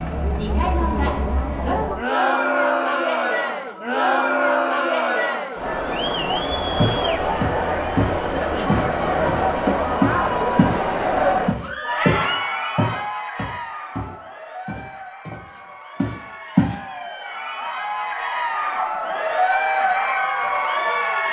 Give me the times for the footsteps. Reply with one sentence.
The footsteps can be heard from 6.8 to 10.8 s and from 11.4 to 16.8 s.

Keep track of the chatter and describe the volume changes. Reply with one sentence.
The volume of the chatter goes down, then up.